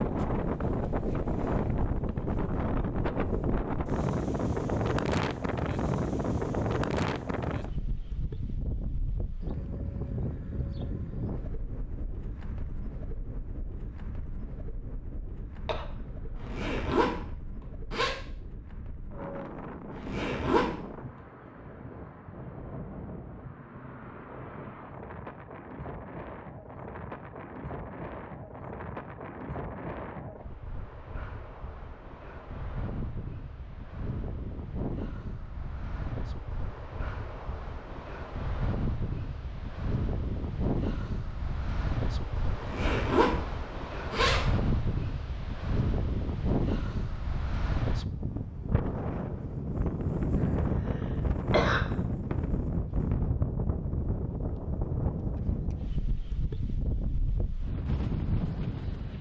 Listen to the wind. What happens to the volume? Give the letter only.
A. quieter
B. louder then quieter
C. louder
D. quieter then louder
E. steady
D.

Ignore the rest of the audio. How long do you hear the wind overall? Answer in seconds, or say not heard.
59 s.